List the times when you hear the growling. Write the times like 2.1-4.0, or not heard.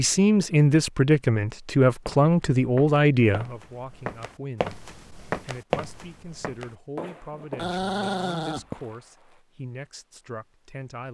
7.3-8.7.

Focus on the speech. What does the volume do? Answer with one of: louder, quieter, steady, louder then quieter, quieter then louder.
quieter.